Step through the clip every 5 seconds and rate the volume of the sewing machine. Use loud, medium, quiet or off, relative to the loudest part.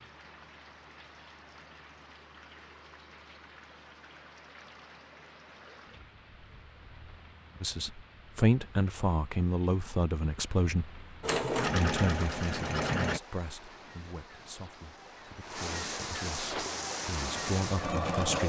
off, off, loud, loud.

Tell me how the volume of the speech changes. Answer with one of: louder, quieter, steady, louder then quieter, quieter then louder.
quieter then louder.